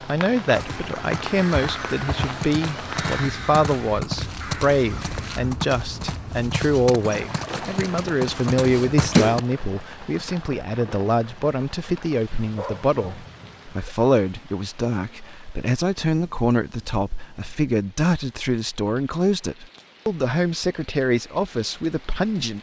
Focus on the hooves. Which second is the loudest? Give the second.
9 s.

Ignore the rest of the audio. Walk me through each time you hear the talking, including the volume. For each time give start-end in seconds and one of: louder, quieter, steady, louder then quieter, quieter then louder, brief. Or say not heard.
0.0-22.5 steady.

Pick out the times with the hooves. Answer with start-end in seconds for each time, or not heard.
0.5-9.4.